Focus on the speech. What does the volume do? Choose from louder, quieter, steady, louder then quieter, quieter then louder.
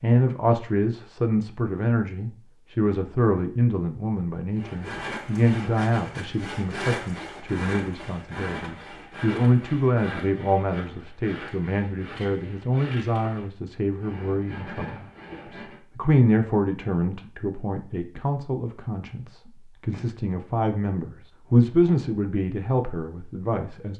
steady.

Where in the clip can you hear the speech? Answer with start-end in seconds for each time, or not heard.
0.0-23.9.